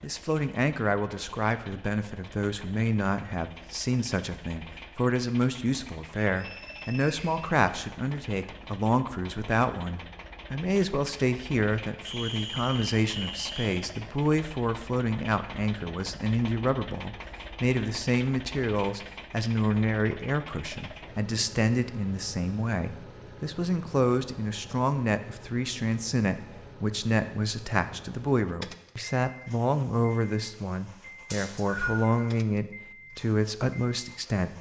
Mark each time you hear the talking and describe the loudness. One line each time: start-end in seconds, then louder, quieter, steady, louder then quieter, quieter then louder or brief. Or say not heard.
0.0-34.5 steady.